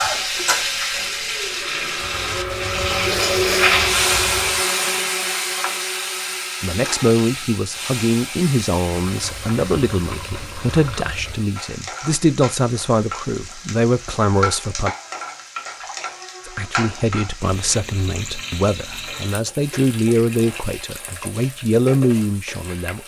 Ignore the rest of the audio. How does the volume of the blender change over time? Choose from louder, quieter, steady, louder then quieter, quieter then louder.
louder then quieter.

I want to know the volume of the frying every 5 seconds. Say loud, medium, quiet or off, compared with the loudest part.
loud, medium, medium, medium, quiet.